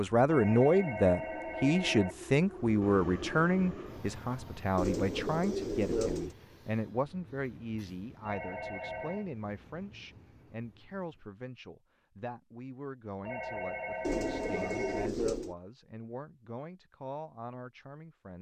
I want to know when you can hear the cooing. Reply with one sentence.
You can hear the cooing from 4.8 to 6.3 s and from 14.0 to 15.6 s.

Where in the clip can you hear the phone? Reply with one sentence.
The phone can be heard from 0.2 to 2.1 s, from 8.2 to 9.3 s and from 13.2 to 15.1 s.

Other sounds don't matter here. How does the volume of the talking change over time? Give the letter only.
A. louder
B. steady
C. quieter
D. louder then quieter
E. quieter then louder
C.